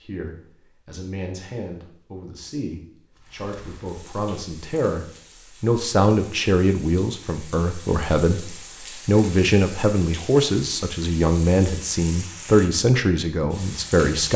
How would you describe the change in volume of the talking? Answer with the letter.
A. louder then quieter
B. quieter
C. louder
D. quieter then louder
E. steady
C.